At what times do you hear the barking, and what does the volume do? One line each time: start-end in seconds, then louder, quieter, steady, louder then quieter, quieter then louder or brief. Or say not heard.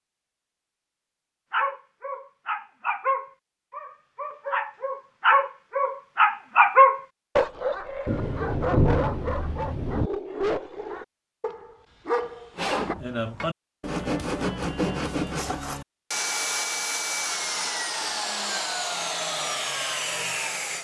1.5-12.9 louder then quieter.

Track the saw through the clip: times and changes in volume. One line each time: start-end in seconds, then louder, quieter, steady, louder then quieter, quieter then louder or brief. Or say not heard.
12.6-20.7 steady.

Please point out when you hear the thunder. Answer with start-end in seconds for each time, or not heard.
8.1-10.1.